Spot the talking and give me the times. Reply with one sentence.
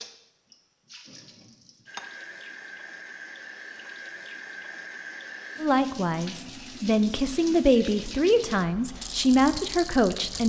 You can hear the talking from 5.6 to 10.4 s.